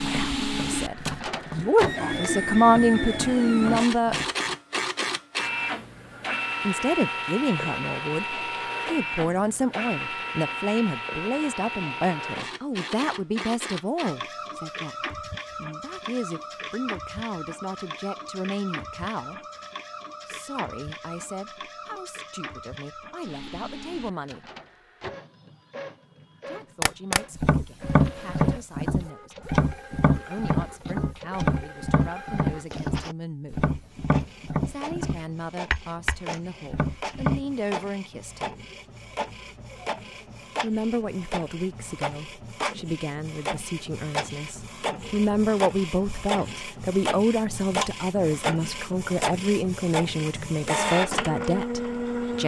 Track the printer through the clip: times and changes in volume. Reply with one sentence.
You can hear the printer from 0.0 to 52.4 s, getting quieter then louder.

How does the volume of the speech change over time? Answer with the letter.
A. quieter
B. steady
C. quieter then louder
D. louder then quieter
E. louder
C.